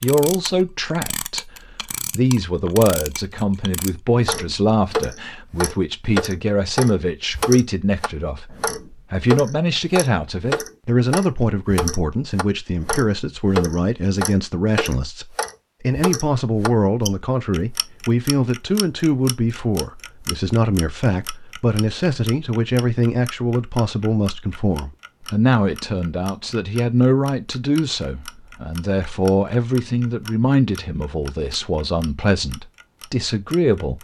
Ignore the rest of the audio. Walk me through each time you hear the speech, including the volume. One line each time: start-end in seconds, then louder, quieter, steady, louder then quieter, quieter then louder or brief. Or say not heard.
0.0-33.9 steady.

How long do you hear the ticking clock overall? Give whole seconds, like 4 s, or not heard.
34 s.